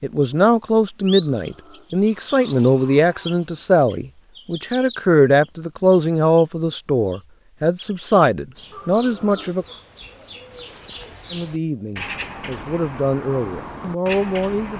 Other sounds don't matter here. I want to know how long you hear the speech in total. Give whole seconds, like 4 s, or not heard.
13 s.